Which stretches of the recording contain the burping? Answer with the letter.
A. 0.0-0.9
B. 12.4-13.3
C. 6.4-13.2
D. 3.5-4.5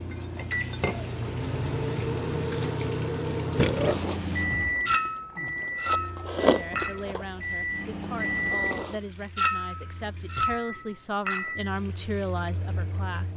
D.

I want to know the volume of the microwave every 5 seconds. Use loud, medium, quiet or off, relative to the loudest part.
loud, loud, medium.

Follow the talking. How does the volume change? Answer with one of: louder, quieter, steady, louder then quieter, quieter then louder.
louder.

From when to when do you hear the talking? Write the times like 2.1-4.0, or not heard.
6.4-13.2.